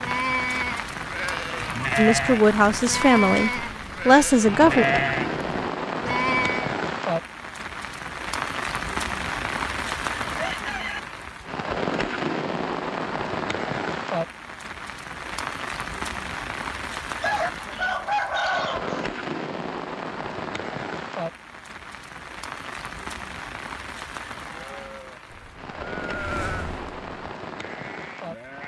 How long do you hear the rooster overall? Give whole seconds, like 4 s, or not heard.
3 s.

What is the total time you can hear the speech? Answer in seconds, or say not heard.
3 s.